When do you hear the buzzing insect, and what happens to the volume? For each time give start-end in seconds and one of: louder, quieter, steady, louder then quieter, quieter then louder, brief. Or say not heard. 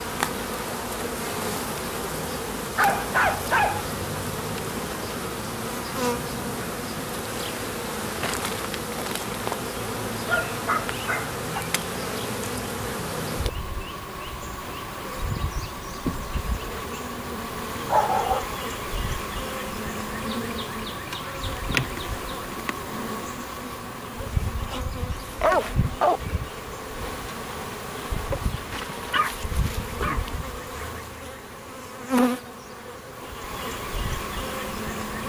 0.0-35.2 steady.